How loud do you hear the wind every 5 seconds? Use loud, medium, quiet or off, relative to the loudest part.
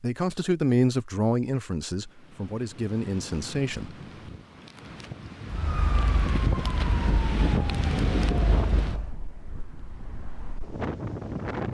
quiet, loud, loud.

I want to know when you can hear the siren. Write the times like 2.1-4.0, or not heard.
5.5-9.1.